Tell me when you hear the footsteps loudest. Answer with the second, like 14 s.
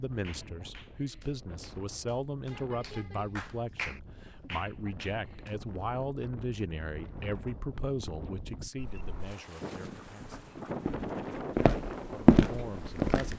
12 s.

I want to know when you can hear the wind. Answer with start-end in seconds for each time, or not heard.
0.0-13.1.